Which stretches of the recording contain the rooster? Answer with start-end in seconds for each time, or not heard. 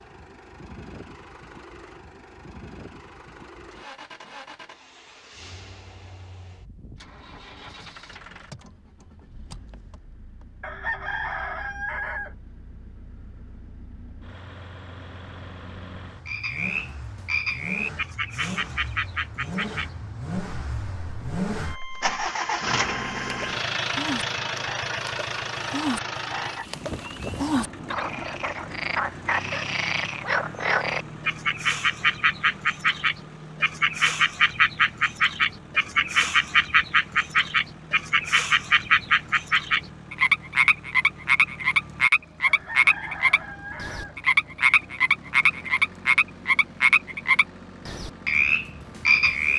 10.6-12.3, 42.5-44.2.